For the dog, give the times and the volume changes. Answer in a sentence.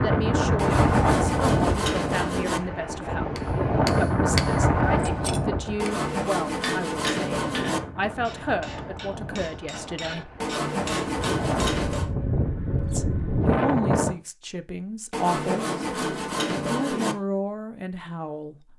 The dog can't be heard in this clip.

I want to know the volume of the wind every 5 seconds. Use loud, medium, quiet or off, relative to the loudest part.
loud, medium, loud, off.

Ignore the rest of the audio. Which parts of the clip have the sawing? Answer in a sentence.
The sawing can be heard from 0.6 to 2.6 s, from 5.8 to 7.8 s, from 10.4 to 12.1 s and from 15.1 to 17.1 s.